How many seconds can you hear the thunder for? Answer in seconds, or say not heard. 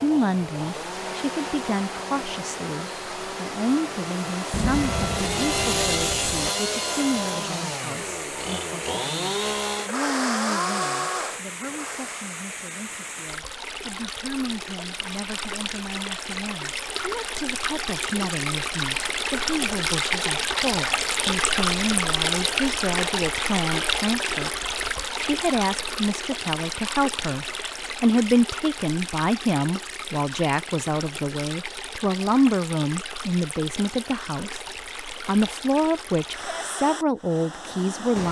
2 s.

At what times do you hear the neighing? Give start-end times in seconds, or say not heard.
not heard.